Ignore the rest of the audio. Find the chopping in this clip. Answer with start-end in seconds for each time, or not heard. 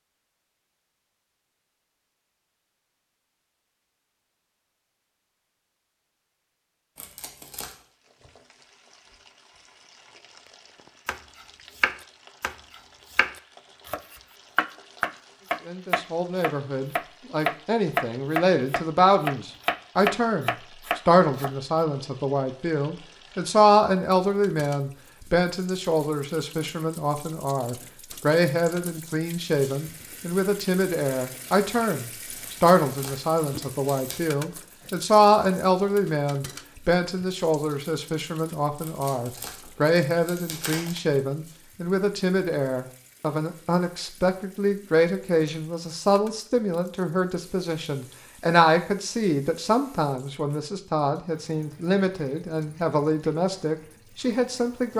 11.1-21.5.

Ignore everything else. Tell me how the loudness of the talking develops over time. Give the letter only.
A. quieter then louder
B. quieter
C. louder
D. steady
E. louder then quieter
D.